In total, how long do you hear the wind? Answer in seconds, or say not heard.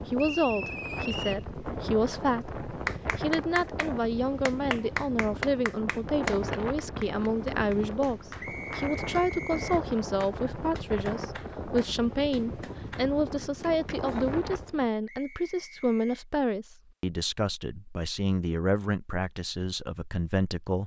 15 s.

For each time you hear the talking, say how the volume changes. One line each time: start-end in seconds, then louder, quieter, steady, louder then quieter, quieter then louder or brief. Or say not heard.
0.1-20.8 steady.